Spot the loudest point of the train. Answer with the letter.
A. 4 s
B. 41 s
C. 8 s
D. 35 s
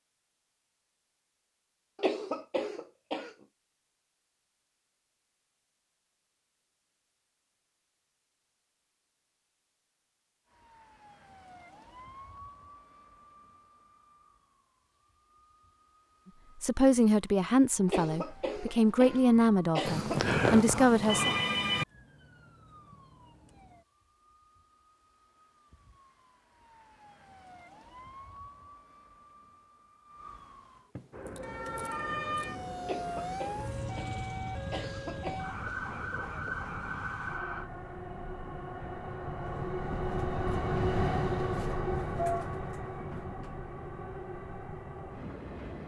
B.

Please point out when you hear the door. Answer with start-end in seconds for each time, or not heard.
not heard.